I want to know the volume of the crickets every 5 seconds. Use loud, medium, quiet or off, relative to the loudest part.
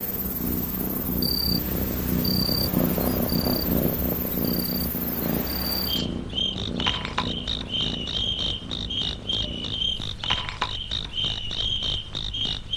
medium, loud, loud.